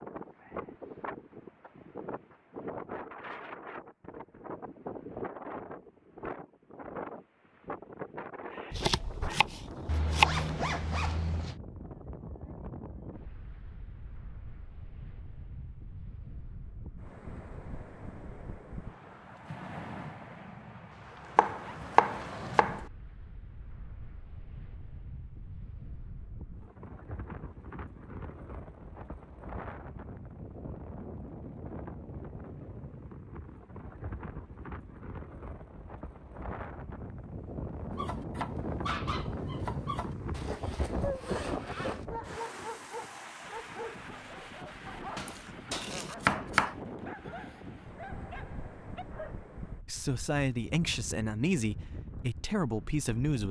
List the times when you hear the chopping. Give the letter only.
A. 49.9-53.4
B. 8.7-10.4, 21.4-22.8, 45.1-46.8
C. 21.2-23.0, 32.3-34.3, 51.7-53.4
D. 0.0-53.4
B.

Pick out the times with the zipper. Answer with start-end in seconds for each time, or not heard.
9.8-11.6, 20.9-22.9, 40.3-42.0.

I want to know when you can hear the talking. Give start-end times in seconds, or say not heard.
49.9-53.4.